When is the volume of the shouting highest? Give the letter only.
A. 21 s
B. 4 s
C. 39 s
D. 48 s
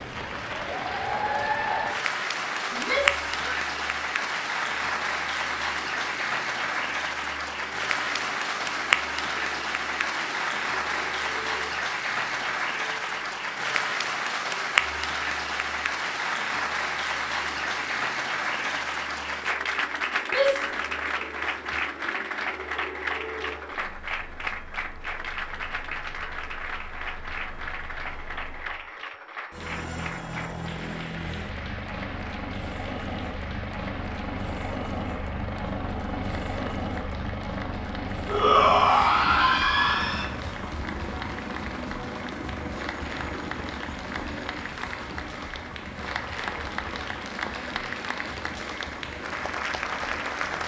C.